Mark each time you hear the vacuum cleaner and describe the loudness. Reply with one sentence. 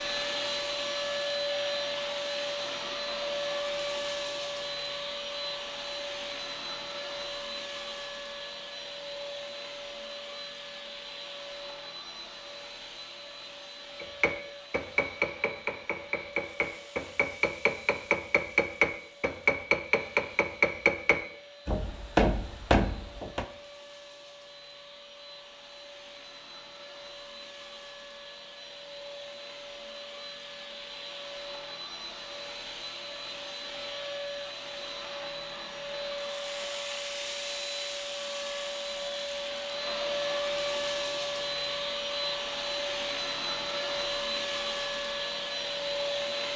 The vacuum cleaner can be heard from 0.0 to 46.5 s, getting quieter then louder.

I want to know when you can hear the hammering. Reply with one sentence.
You can hear the hammering from 14.0 to 23.4 s.